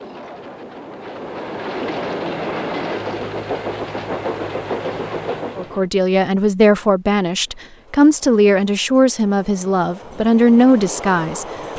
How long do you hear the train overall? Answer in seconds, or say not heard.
10 s.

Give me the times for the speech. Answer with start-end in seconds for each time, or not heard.
5.5-11.4.